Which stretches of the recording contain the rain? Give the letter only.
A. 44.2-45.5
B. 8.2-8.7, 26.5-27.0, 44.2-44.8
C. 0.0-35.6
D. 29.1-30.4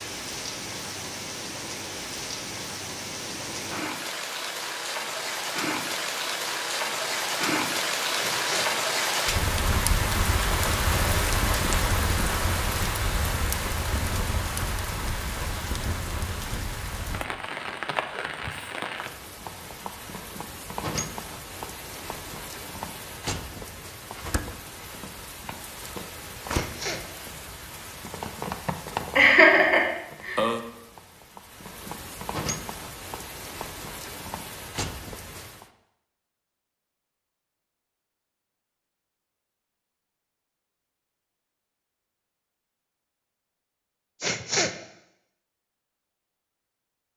C.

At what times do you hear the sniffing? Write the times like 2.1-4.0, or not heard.
8.2-8.7, 26.5-27.0, 44.2-44.8.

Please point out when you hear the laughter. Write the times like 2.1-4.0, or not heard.
29.1-30.4.